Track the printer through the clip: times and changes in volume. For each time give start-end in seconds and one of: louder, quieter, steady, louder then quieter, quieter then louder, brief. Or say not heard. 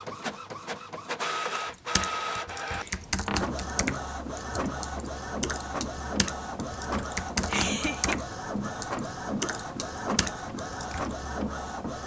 0.0-12.0 steady.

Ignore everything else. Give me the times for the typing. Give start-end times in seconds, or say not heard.
1.6-11.2.